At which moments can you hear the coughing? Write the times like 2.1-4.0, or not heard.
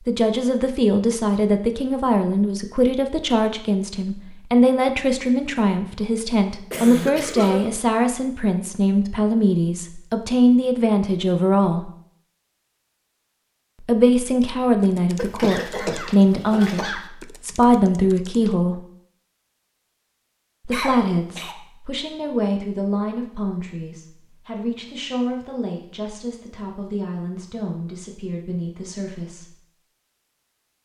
6.7-7.8, 15.2-17.0, 20.7-21.6.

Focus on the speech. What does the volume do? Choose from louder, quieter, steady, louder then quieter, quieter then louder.
quieter.